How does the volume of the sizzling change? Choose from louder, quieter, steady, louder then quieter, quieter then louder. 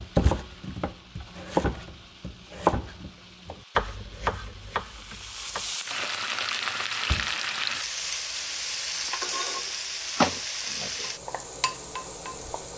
louder.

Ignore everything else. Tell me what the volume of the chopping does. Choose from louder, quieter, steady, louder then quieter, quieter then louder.
louder then quieter.